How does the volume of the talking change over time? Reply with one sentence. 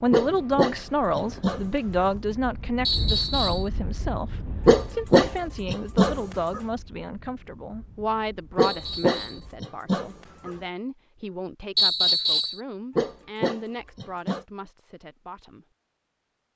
The volume of the talking goes down.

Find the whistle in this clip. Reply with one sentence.
The whistle can be heard from 2.9 to 3.7 s, from 8.6 to 9.4 s and from 11.8 to 12.6 s.